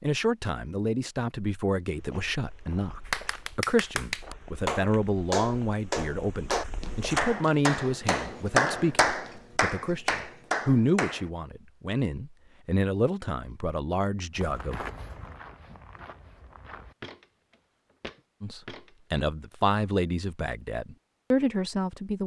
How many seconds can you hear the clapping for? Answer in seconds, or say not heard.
8 s.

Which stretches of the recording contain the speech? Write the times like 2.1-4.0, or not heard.
0.0-14.8, 18.4-22.2.